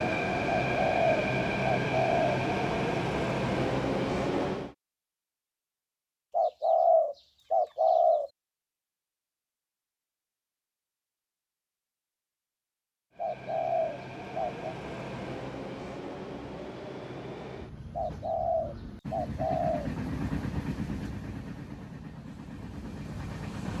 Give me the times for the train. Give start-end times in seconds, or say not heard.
0.0-4.8, 13.1-23.7.